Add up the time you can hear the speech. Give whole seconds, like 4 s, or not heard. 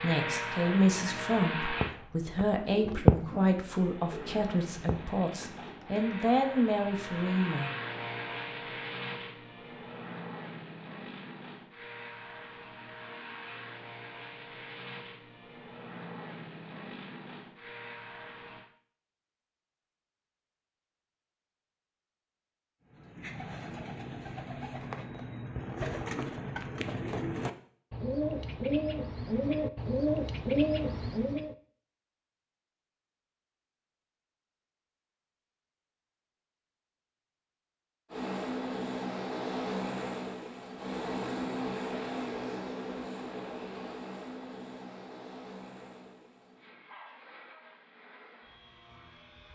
8 s.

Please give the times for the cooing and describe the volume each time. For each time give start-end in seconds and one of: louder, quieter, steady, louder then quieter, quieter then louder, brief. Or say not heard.
1.8-6.2 louder then quieter
22.9-31.6 louder.